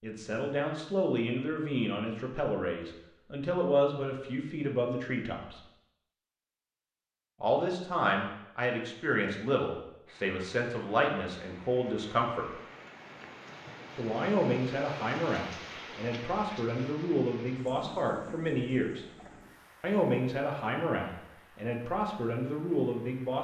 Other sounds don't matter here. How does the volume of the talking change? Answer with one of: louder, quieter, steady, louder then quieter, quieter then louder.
steady.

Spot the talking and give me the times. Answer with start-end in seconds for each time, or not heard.
0.0-5.6, 7.4-12.5, 13.9-19.1, 19.8-23.3.